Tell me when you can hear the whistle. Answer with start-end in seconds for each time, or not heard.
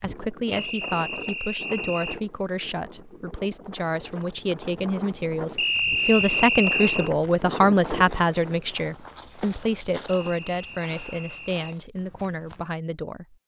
0.5-2.2, 5.5-7.1, 10.1-11.6.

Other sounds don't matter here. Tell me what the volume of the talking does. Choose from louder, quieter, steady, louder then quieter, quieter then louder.
louder then quieter.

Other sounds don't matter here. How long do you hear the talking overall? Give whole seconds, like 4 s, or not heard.
13 s.